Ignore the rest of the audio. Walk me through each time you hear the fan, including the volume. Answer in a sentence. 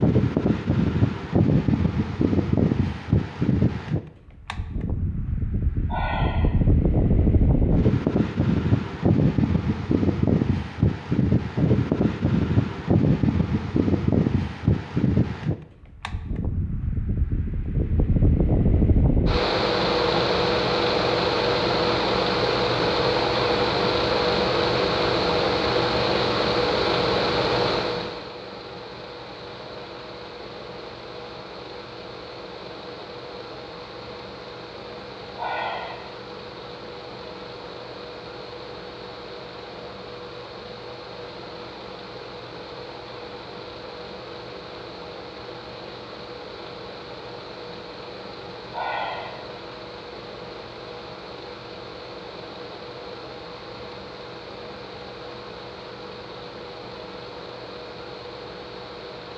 The fan can be heard from 0.0 to 59.3 s, getting quieter.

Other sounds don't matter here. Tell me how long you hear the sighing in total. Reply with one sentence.
You can hear the sighing for 2 seconds altogether.